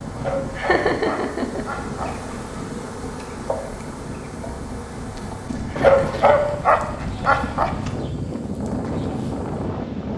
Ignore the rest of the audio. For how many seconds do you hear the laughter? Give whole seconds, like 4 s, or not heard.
2 s.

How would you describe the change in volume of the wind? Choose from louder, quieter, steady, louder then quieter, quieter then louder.
louder.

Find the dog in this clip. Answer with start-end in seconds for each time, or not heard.
0.1-2.7, 5.8-7.7.